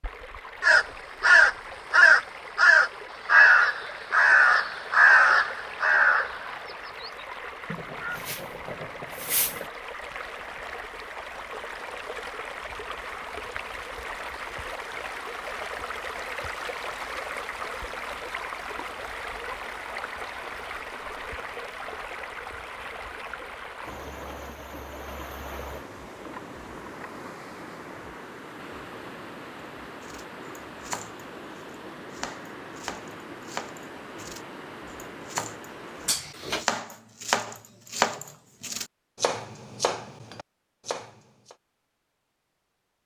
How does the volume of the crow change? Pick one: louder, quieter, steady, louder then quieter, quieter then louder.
quieter.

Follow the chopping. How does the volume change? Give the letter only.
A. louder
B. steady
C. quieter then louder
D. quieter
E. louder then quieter
E.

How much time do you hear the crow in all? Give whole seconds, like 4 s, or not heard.
9 s.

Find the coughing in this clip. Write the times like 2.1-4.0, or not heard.
36.0-36.7.